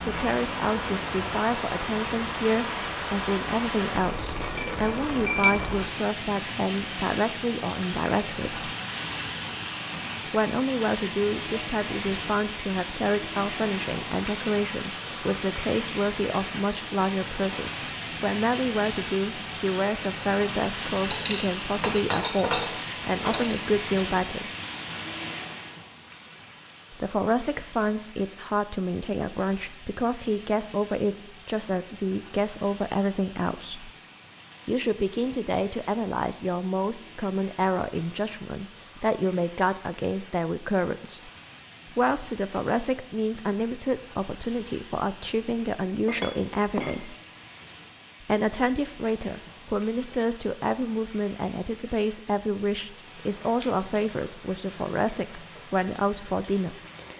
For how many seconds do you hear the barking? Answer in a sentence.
You can't hear the barking here.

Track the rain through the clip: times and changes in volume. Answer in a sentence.
The rain can be heard from 0.0 to 57.1 s, getting quieter.